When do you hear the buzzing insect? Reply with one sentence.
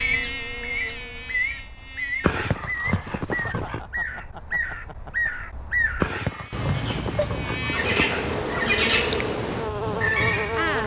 You can hear the buzzing insect from 0.0 to 2.4 s and from 6.2 to 10.8 s.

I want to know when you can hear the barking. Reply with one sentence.
You can hear the barking from 2.2 to 3.9 s and from 6.0 to 8.3 s.